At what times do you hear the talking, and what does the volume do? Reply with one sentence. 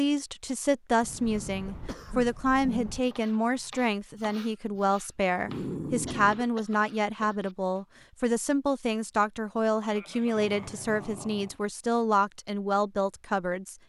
You can hear the talking from 0.0 to 13.8 s, at a steady volume.